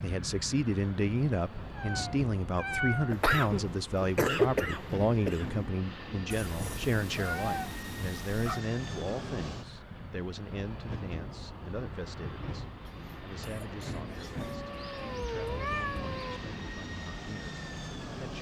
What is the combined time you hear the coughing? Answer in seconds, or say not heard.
4 s.